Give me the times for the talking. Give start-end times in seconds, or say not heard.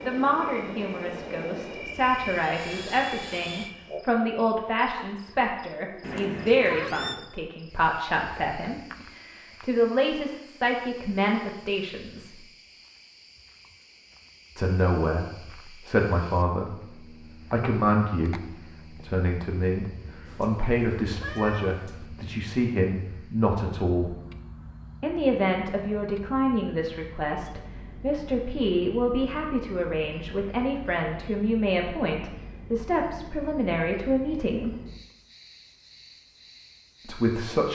0.0-12.3, 14.6-16.8, 17.5-24.2, 25.0-34.7, 37.0-37.7.